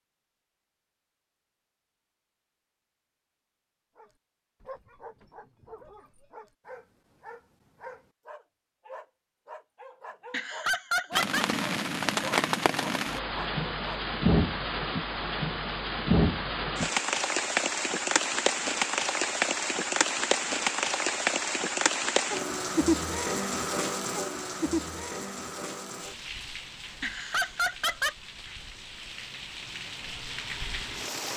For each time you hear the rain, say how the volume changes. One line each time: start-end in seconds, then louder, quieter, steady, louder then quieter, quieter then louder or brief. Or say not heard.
11.1-31.3 quieter.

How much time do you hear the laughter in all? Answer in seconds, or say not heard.
2 s.